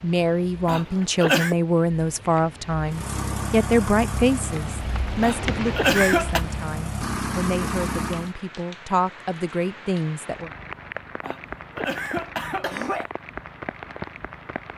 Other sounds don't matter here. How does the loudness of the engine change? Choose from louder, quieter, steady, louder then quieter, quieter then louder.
quieter then louder.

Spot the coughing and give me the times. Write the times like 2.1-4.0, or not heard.
0.7-1.6, 5.2-6.5, 11.2-13.1.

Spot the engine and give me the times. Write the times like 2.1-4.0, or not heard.
2.9-8.3.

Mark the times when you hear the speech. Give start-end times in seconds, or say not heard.
0.0-10.5.